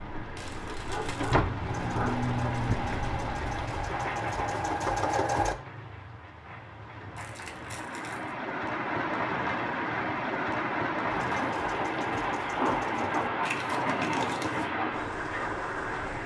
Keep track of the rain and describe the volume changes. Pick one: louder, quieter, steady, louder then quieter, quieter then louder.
quieter then louder.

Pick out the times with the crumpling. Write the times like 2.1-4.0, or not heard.
0.3-1.4, 7.2-8.3, 13.4-14.7.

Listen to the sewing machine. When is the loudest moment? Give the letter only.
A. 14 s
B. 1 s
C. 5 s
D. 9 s
C.